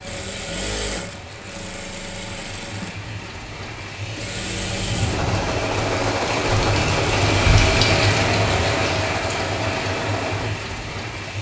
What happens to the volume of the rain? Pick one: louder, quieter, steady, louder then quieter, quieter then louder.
louder then quieter.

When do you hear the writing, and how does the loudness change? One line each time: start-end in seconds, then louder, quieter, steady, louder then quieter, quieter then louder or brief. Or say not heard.
not heard.